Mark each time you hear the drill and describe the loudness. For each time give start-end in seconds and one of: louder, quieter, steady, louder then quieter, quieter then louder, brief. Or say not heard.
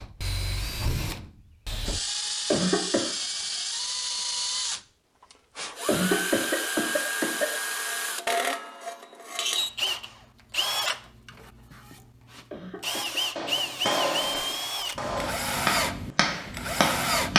0.0-17.3 steady.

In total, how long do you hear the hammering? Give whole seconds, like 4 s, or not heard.
4 s.